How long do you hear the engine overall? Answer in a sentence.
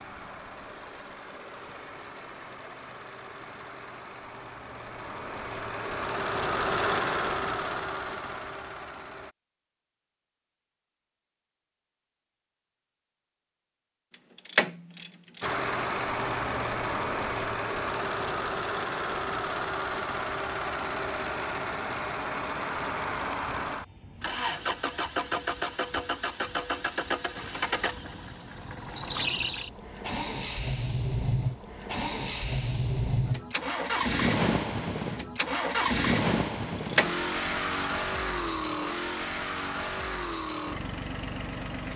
You can hear the engine for 36 seconds altogether.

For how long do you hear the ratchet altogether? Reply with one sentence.
You can hear the ratchet for 3 seconds altogether.